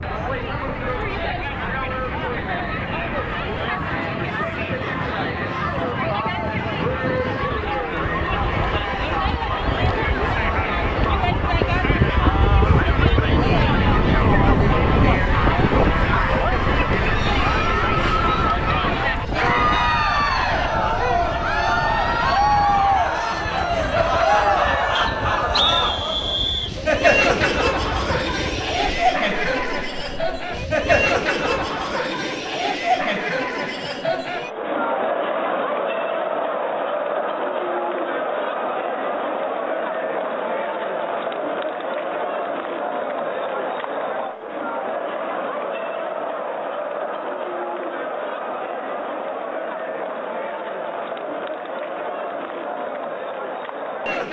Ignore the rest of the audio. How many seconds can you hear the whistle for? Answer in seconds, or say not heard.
2 s.